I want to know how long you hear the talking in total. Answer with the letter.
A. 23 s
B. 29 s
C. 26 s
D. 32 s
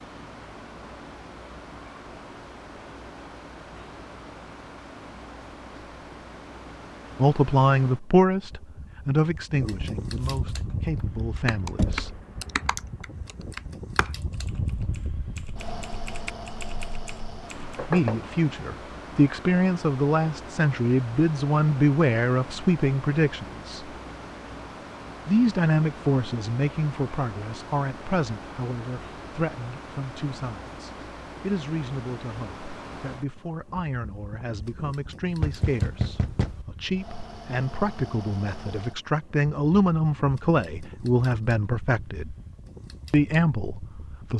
B.